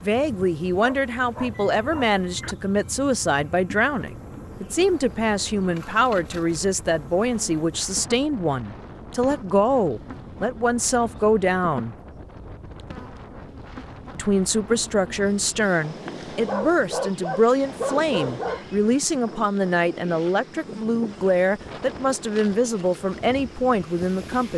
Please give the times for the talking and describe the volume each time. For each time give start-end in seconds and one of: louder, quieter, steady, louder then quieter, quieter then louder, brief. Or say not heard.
0.0-11.9 steady
14.2-24.5 steady.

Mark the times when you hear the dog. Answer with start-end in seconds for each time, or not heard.
0.8-2.5, 16.4-18.8.